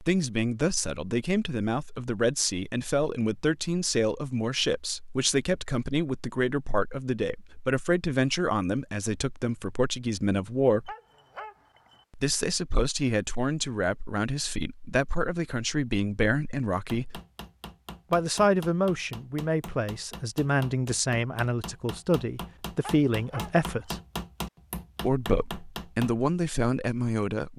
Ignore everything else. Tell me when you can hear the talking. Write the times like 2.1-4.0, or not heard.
0.0-10.9, 12.2-17.2, 18.1-23.9, 25.0-27.5.